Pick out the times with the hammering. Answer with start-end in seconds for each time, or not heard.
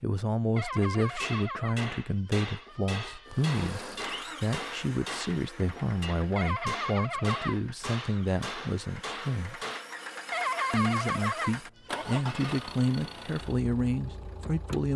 1.2-9.8.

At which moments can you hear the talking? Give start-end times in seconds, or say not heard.
0.0-9.6, 10.7-14.9.